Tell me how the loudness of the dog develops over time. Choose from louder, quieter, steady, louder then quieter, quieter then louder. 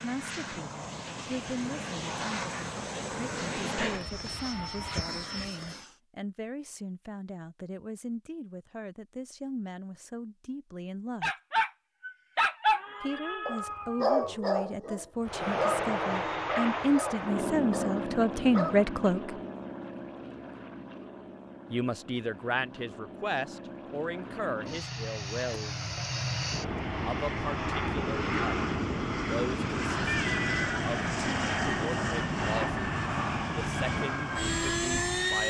quieter.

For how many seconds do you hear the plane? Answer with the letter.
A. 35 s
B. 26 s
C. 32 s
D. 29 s
B.